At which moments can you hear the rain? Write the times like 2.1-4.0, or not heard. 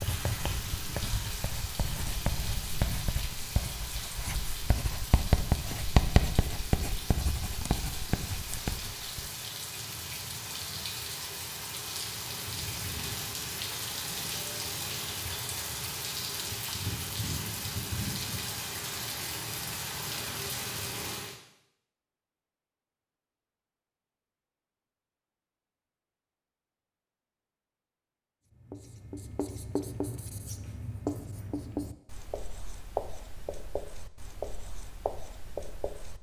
0.0-21.4.